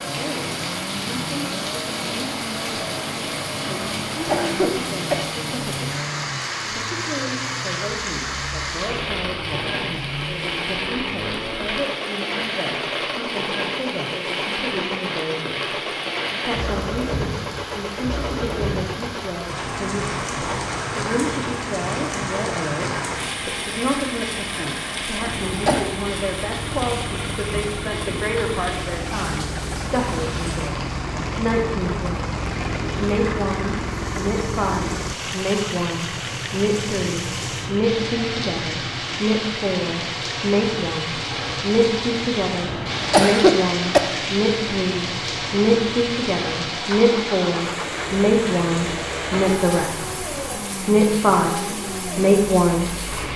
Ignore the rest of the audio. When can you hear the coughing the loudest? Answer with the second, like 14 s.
43 s.